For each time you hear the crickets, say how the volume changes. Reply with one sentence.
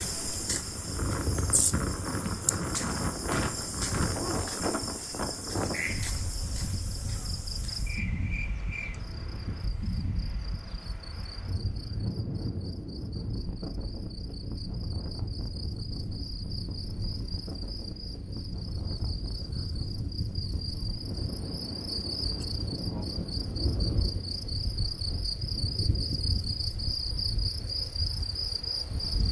The crickets can be heard from 0.0 to 29.2 s, getting quieter then louder.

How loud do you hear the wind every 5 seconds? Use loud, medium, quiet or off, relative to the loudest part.
loud, medium, medium, medium, medium, quiet.